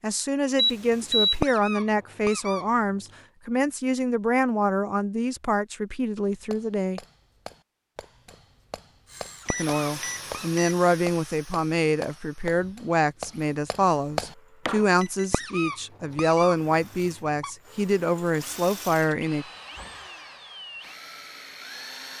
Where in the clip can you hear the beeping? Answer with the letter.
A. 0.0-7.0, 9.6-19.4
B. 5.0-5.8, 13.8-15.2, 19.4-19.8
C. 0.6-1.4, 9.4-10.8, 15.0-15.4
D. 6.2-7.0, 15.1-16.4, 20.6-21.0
C.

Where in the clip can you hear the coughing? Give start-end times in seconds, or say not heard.
not heard.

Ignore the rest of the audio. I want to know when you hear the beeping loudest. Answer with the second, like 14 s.
1 s.